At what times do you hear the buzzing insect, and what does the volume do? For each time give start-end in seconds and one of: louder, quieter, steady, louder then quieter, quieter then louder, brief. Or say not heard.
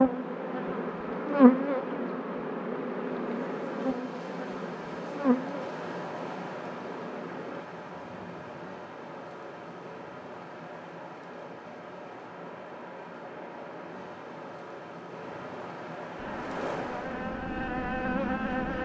0.0-7.7 quieter
16.1-18.8 brief.